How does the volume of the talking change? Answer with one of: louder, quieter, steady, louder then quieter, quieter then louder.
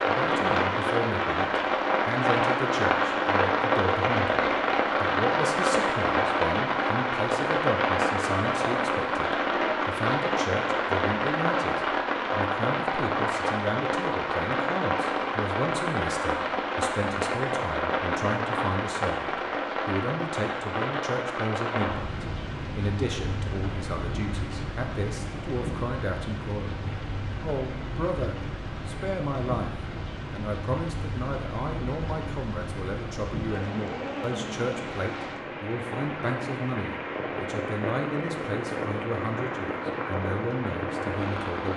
steady.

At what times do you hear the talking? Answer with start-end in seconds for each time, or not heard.
0.1-41.7.